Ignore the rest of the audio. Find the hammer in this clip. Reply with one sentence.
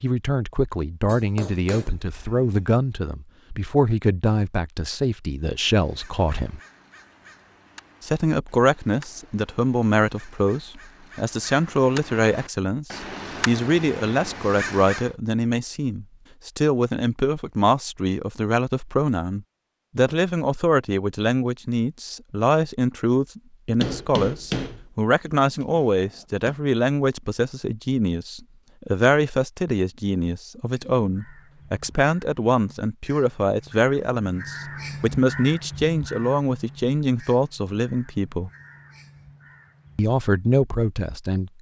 The hammer can be heard from 1.1 to 2.5 s and from 23.8 to 26.6 s.